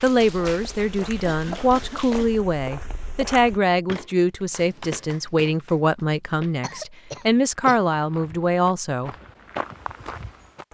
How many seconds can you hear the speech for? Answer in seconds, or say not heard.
9 s.